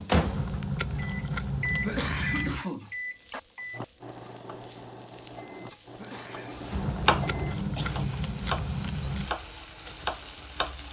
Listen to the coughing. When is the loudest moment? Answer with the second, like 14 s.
2 s.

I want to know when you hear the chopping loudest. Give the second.
7 s.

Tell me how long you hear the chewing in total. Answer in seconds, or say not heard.
5 s.